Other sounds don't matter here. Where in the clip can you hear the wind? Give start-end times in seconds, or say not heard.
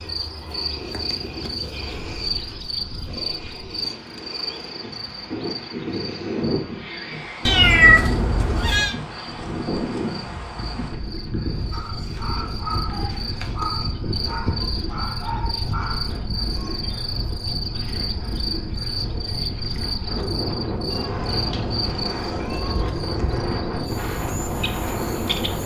0.0-25.6.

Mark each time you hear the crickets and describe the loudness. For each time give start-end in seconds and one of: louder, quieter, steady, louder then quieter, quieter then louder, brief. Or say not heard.
0.0-25.6 quieter then louder.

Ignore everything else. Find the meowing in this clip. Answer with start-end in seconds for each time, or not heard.
7.5-8.9, 20.9-22.9.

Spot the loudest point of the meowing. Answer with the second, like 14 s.
8 s.